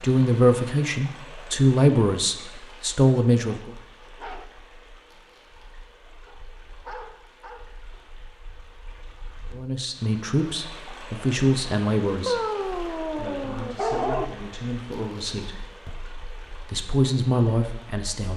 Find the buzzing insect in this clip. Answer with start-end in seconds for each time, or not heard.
not heard.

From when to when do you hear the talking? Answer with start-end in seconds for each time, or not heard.
0.0-3.7, 9.5-18.3.